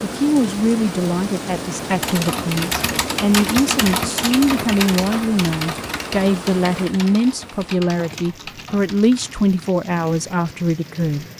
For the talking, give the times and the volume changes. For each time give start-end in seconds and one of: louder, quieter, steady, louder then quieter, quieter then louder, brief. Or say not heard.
0.0-11.2 steady.